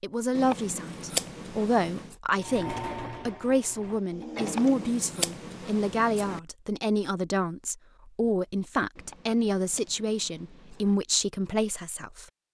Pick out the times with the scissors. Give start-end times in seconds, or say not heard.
0.3-2.1, 4.4-6.4, 8.9-10.9.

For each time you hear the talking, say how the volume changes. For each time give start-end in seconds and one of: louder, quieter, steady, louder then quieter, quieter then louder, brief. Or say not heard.
0.0-12.2 steady.